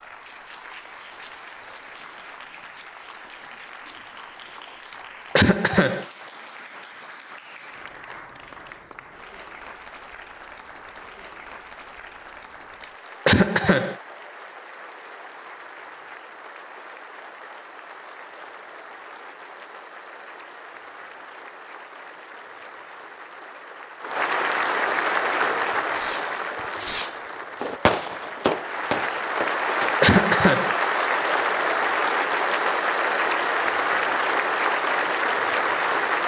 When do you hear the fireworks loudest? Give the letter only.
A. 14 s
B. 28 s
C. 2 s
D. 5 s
B.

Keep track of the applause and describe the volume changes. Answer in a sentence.
The volume of the applause goes up.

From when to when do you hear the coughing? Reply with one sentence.
The coughing can be heard from 5.3 to 6.0 s, from 13.2 to 13.9 s and from 30.0 to 30.8 s.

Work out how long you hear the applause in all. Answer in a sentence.
The applause can be heard for 36 seconds in total.